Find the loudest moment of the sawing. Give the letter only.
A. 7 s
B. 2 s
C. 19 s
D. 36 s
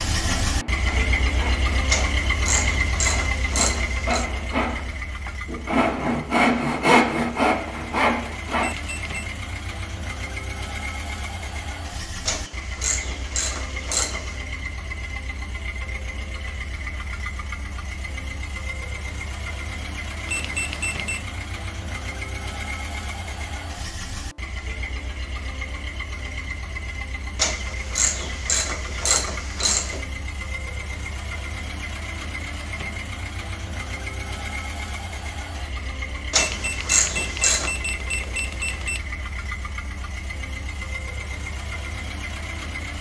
A.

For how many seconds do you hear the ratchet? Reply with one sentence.
The ratchet can be heard for 9 seconds in total.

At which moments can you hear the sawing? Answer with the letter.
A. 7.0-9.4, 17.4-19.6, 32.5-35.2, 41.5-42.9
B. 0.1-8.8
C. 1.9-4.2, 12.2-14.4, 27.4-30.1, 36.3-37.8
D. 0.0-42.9
B.